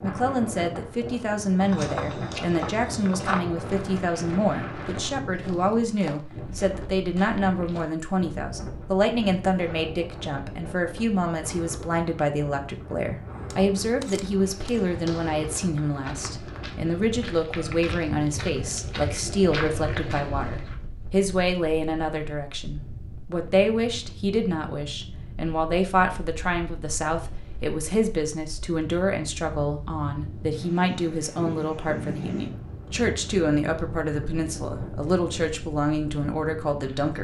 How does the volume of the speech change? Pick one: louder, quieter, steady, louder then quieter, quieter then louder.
steady.